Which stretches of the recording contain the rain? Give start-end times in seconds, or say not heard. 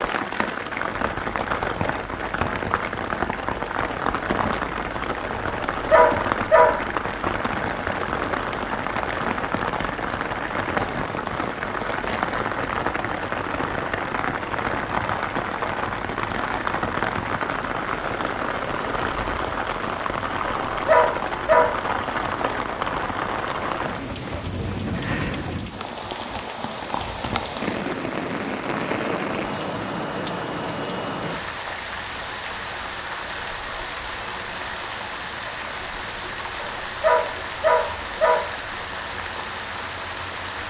0.0-40.6.